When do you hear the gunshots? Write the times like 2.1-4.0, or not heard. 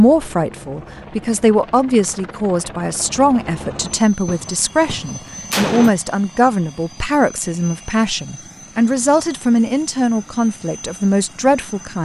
4.2-5.9.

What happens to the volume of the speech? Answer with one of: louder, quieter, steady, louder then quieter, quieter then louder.
steady.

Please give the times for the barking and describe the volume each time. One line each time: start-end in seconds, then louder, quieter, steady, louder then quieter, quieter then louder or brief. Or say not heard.
not heard.